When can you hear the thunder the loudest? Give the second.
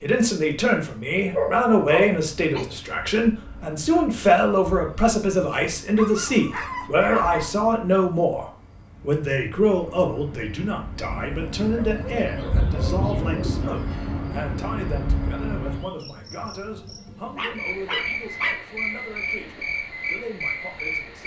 13 s.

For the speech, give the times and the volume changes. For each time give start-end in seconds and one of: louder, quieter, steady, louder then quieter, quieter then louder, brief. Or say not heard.
0.0-21.2 quieter.